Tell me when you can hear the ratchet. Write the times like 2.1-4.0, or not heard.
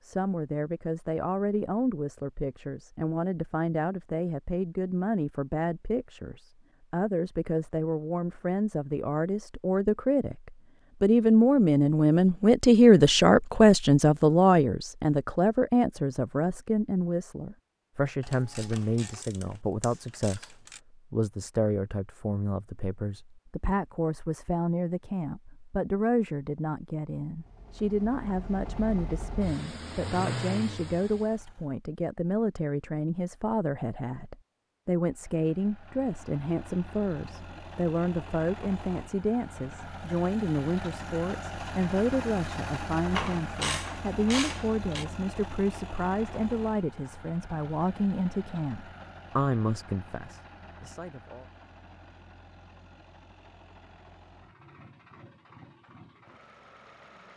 18.2-20.8, 43.1-45.0.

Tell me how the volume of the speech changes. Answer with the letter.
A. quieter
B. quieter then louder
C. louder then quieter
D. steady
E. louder
C.